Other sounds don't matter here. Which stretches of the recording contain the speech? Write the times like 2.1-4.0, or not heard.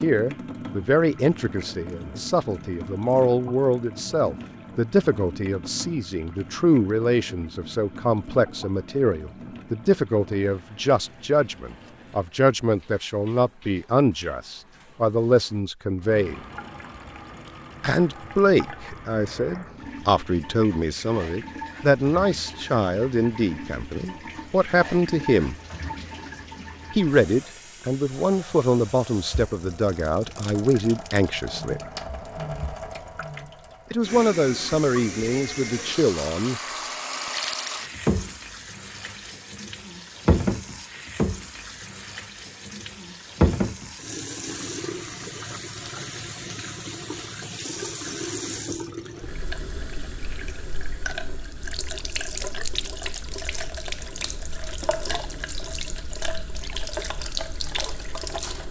0.0-16.4, 17.8-25.6, 26.9-31.8, 33.9-36.6.